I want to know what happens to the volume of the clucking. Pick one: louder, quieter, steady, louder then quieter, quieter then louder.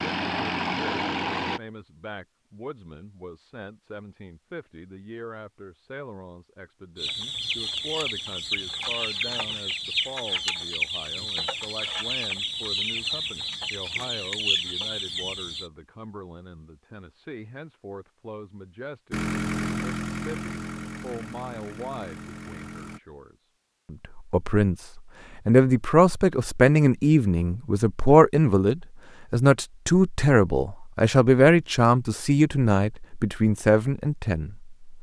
steady.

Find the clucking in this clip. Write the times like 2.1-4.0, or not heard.
7.0-15.7.